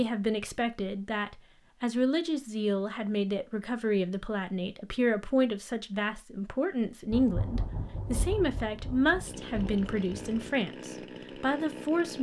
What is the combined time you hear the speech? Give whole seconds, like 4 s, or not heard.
12 s.